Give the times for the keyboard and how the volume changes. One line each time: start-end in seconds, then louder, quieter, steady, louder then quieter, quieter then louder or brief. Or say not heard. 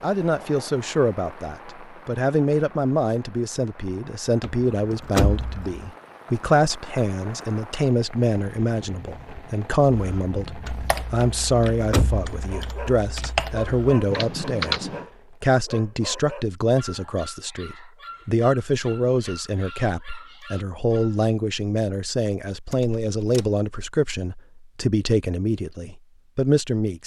9.9-15.1 quieter then louder.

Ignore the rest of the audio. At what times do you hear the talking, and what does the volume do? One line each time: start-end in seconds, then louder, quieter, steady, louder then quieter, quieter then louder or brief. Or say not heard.
0.0-27.0 steady.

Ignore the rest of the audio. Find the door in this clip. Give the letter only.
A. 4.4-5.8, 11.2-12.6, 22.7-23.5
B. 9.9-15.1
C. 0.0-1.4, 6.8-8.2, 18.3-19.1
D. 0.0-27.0
A.